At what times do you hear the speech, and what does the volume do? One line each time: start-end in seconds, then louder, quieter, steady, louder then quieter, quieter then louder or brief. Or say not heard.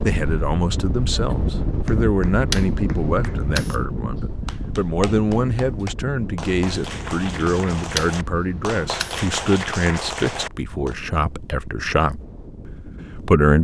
0.0-13.5 steady.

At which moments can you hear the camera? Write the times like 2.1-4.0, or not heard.
2.5-3.9, 8.0-9.2.